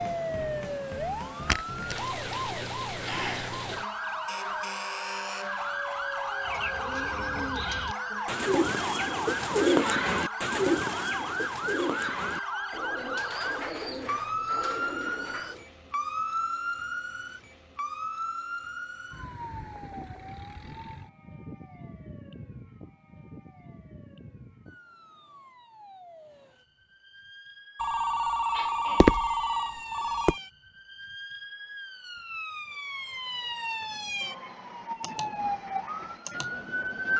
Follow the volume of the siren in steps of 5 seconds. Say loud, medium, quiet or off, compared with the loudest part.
loud, loud, loud, loud, quiet, quiet, medium, loud.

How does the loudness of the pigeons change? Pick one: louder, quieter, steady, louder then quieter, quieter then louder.
louder then quieter.